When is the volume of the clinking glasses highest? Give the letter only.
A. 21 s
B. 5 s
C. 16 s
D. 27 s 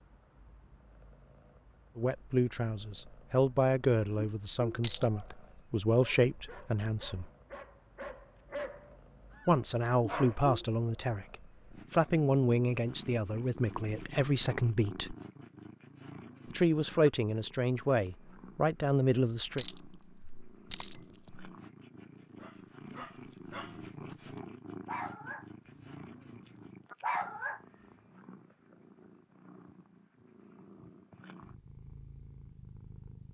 B.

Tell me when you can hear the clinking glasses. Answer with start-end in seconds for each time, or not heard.
4.8-5.2, 19.6-21.5.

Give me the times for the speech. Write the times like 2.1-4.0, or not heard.
1.9-7.3, 9.4-15.2, 16.5-19.6.